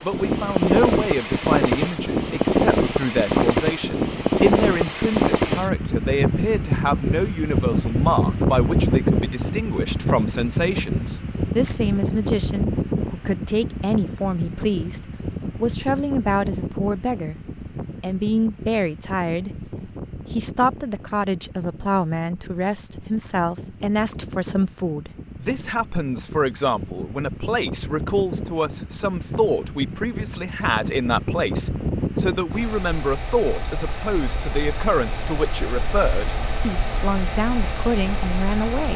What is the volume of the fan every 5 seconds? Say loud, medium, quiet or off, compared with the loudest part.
loud, loud, medium, quiet, quiet, quiet, medium, medium.